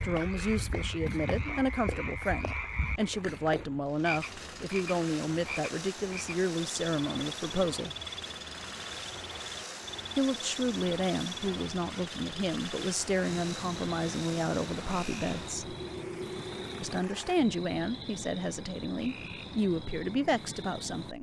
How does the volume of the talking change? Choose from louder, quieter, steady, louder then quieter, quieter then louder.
steady.